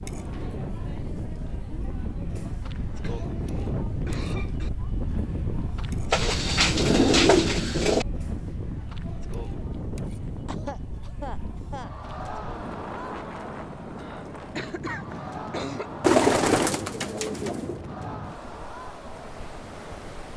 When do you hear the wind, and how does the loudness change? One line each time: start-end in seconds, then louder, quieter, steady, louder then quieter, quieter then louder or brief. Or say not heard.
0.0-20.3 quieter.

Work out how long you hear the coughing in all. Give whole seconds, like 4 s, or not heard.
5 s.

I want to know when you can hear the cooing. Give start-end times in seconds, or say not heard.
6.1-8.1, 16.0-17.8.